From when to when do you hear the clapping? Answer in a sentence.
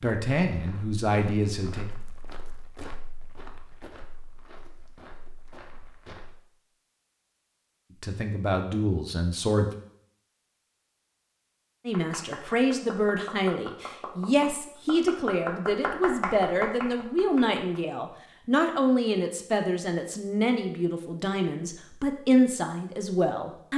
You can hear the clapping from 11.9 to 17.8 s.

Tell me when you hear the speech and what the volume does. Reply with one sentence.
The speech can be heard briefly from 0.0 to 1.9 s; briefly from 8.0 to 9.7 s; and from 11.8 to 23.7 s, at a steady volume.